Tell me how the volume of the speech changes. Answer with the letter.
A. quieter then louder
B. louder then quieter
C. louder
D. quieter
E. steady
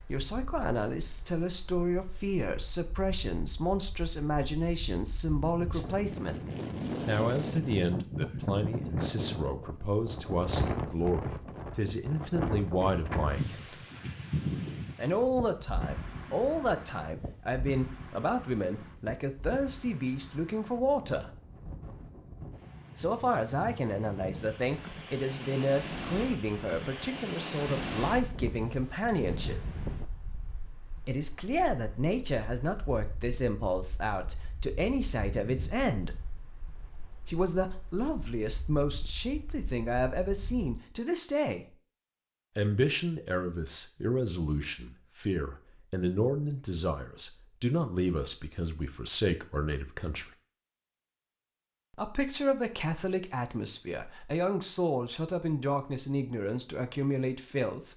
E.